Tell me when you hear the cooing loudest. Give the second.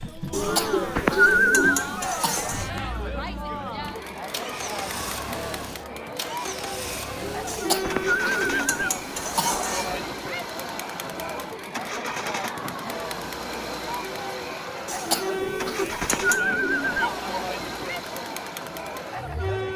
1 s.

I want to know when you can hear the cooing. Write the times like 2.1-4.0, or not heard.
0.3-1.9, 7.2-8.9, 15.3-17.1.